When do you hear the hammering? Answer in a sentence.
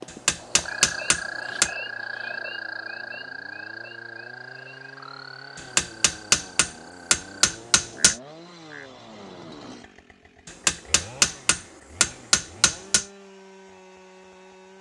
You can hear the hammering from 0.1 to 1.7 s, from 5.5 to 8.2 s and from 10.4 to 13.1 s.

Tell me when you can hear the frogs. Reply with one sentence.
You can hear the frogs from 0.0 to 8.9 s.